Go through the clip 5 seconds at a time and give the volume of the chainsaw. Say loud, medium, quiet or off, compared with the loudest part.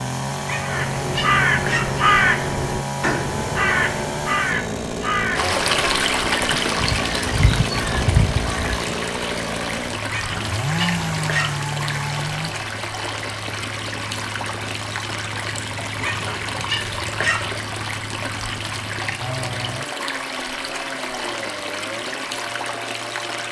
loud, loud, loud, medium, medium.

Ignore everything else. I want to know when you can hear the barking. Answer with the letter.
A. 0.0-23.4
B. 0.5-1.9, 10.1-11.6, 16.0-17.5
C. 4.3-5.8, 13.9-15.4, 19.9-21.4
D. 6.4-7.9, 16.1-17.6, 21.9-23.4
B.